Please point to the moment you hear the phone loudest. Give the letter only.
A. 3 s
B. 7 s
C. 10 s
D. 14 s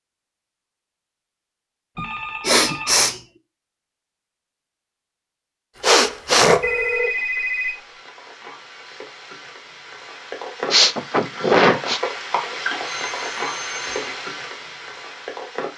B.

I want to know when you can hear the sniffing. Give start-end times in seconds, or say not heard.
1.9-3.2, 5.8-6.7, 10.7-12.0.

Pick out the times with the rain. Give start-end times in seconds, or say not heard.
5.7-15.7.